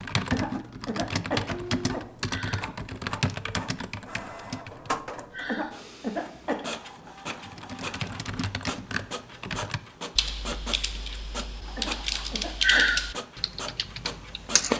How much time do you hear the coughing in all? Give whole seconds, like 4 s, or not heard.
4 s.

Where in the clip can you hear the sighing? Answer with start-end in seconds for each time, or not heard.
2.2-2.7, 5.3-5.8, 12.6-13.1.